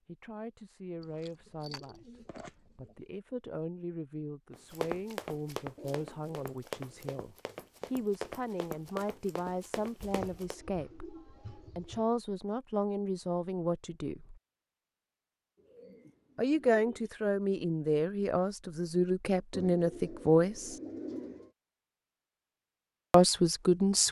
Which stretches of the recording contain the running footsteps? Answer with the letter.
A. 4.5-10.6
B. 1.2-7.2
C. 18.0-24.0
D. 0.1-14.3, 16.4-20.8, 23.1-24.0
A.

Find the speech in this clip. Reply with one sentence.
The speech can be heard from 0.1 to 14.3 s, from 16.4 to 20.8 s and from 23.1 to 24.0 s.